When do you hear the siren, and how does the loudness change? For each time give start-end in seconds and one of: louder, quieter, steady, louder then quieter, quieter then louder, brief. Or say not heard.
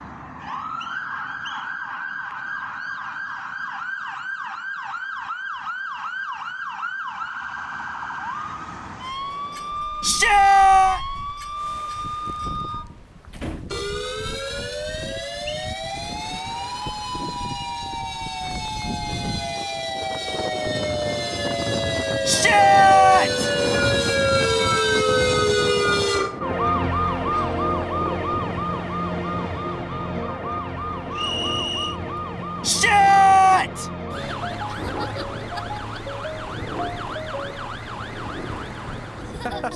0.0-39.7 louder then quieter.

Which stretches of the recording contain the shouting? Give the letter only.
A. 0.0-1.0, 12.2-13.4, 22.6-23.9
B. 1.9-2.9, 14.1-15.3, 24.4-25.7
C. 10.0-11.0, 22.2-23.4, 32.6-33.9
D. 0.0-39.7
C.